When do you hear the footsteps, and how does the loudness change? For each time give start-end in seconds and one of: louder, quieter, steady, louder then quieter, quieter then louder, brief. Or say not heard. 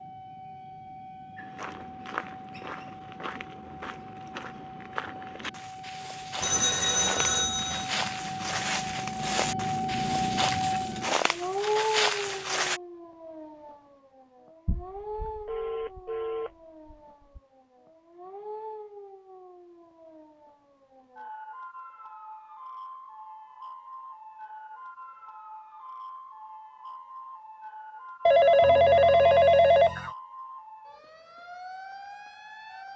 1.4-12.8 louder.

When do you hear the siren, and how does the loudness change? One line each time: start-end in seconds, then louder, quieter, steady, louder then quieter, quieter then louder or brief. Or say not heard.
0.0-32.9 louder then quieter.